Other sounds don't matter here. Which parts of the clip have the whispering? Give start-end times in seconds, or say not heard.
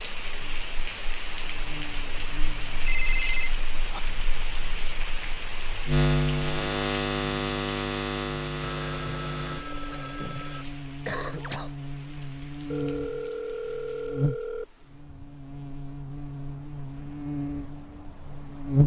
not heard.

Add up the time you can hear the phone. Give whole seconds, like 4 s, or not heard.
5 s.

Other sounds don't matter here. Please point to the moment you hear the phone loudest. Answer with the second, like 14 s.
3 s.